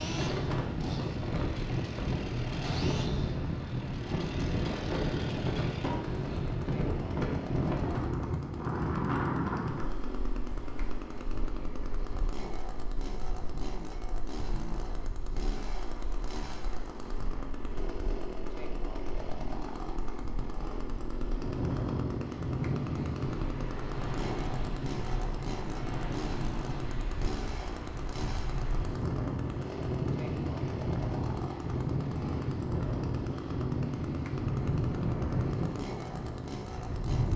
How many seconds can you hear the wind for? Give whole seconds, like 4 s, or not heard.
37 s.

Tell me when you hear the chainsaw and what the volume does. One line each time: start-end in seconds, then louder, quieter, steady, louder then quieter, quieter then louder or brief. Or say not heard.
0.0-37.3 steady.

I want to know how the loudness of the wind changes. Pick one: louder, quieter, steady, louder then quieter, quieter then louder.
quieter then louder.